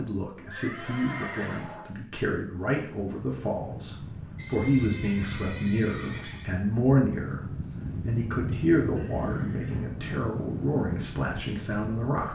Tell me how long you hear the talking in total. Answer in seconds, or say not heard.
12 s.